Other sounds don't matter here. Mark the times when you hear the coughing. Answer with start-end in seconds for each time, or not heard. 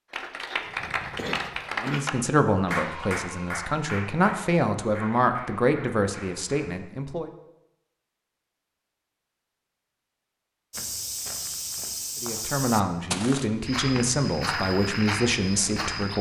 0.5-2.1.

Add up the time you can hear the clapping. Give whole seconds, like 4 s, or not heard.
7 s.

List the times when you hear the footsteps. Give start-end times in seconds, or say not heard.
10.7-16.1.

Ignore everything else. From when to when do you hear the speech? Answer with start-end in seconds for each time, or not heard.
1.8-7.3, 12.2-16.1.